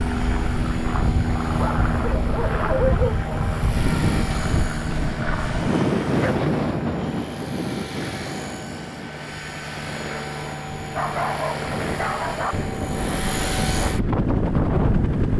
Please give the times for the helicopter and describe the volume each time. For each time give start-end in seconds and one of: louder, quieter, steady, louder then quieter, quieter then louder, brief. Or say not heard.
0.0-15.3 quieter then louder.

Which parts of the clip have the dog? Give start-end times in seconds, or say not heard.
1.6-3.2, 6.2-7.4, 10.9-12.6.